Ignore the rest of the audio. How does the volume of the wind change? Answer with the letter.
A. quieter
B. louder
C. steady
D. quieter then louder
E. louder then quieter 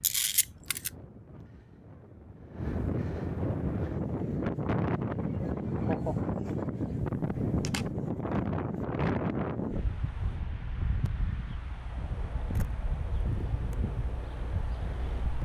E.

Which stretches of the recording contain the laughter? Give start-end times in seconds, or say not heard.
5.3-6.2.